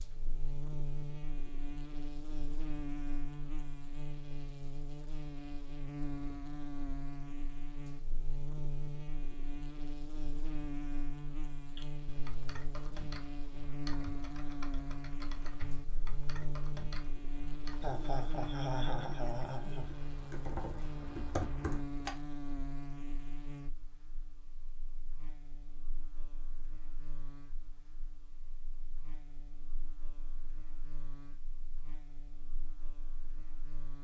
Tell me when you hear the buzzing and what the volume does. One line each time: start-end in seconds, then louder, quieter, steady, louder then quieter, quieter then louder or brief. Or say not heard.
0.0-33.9 quieter.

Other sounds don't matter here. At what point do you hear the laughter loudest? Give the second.
19 s.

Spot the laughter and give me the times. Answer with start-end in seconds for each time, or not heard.
17.8-19.9.